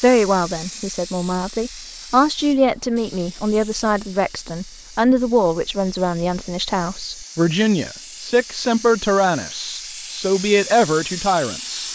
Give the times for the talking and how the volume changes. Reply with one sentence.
The talking can be heard from 0.0 to 11.9 s, at a steady volume.